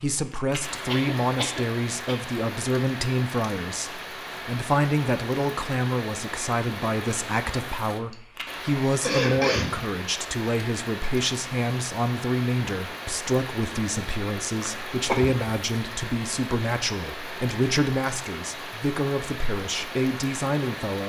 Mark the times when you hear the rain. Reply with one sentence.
The rain can be heard from 0.0 to 21.0 s.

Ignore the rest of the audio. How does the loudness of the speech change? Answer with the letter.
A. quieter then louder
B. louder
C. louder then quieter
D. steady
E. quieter
D.